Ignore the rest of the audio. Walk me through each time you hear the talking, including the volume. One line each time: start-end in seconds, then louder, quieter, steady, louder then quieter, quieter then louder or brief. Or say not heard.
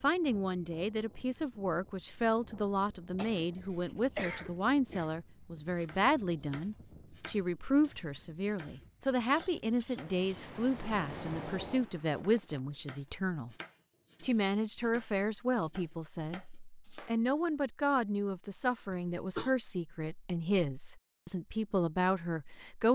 0.0-13.6 steady
14.2-22.8 steady.